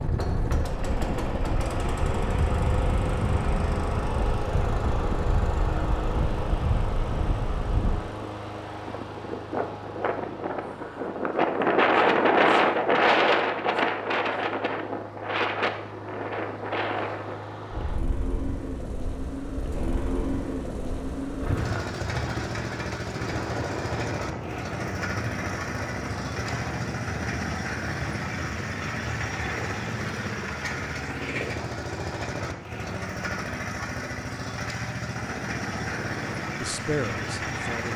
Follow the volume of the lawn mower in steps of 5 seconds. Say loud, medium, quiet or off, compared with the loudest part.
loud, loud, quiet, medium, loud, loud, loud, loud.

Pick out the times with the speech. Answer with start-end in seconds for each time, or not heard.
36.6-37.9.